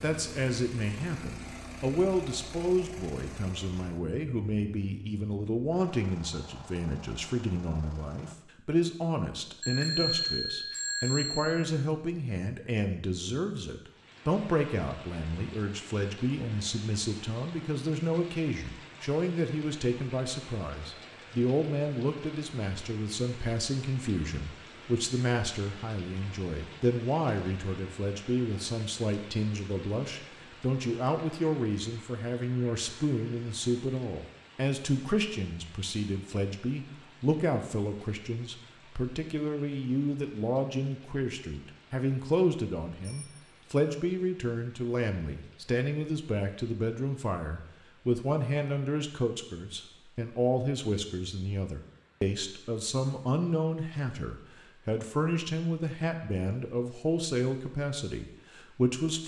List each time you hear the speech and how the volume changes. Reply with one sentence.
The speech can be heard from 0.0 to 59.2 s, at a steady volume.